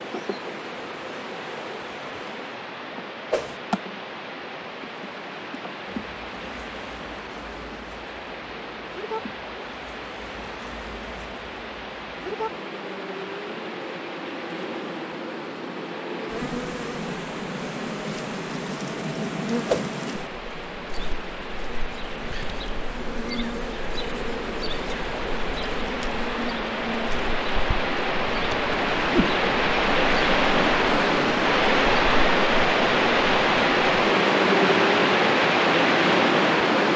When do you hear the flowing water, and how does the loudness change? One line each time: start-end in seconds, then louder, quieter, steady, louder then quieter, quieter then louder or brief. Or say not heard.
0.0-36.9 louder.